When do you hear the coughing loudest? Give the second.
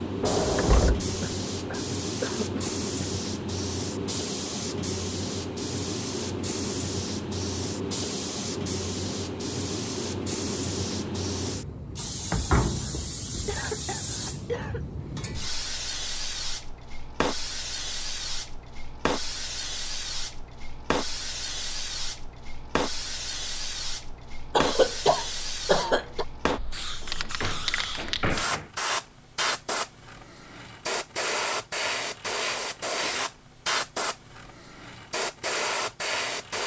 25 s.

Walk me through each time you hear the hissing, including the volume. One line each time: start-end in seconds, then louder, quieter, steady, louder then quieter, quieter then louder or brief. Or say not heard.
0.0-36.6 steady.